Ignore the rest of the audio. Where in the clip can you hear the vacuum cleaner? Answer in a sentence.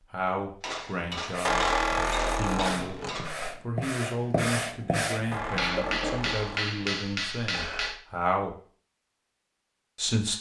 You can't hear the vacuum cleaner here.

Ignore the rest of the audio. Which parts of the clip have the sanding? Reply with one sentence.
You can hear the sanding from 1.2 to 6.4 s.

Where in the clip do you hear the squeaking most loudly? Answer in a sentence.
The volume of the squeaking peaks at 2 seconds.